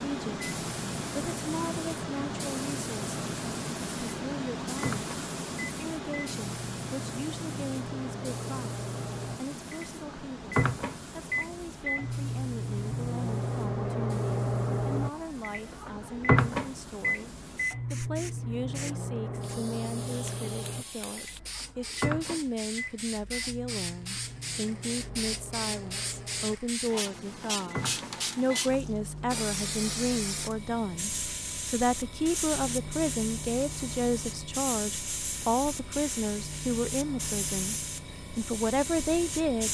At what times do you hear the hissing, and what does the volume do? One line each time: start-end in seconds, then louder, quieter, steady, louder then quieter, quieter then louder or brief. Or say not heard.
0.0-39.6 quieter then louder.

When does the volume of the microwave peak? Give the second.
17 s.